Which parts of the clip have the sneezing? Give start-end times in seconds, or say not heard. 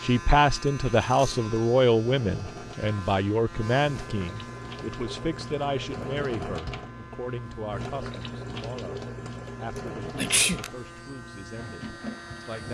10.2-10.6.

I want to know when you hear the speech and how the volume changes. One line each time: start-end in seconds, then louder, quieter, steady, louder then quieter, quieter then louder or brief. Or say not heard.
0.0-12.6 quieter.